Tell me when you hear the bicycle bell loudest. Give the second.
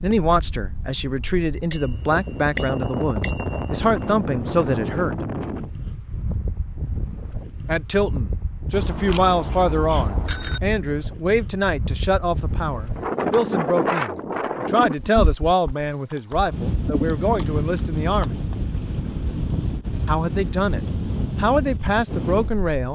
3 s.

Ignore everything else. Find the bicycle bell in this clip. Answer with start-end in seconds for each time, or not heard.
1.7-3.9, 8.7-10.6, 19.4-19.9.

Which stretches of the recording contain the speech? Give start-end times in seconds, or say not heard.
0.0-5.2, 7.7-18.4, 20.1-22.9.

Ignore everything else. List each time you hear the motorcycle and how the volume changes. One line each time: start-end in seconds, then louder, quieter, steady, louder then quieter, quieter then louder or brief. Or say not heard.
not heard.